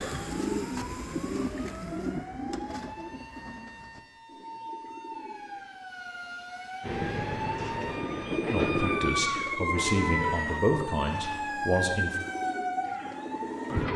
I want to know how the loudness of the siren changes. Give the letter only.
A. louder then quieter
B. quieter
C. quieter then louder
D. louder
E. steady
D.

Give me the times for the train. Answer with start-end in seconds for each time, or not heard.
6.8-10.5.